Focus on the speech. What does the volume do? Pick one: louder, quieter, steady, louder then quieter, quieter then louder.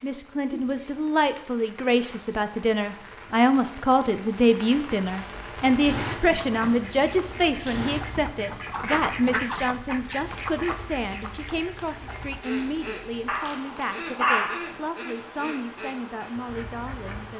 quieter.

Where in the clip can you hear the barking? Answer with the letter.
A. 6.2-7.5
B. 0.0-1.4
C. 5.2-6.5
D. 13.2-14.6
D.